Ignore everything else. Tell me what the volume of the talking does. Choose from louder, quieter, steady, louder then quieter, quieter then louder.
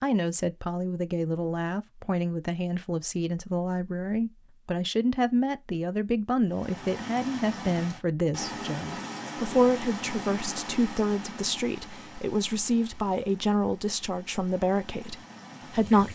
steady.